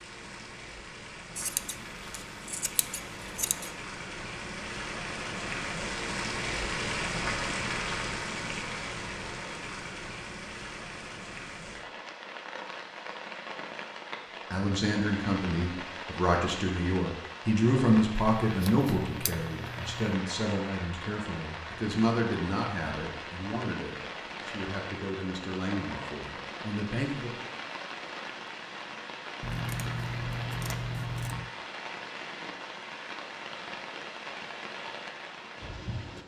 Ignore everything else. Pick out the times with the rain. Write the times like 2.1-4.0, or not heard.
0.0-36.2.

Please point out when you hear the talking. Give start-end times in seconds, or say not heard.
14.5-27.4.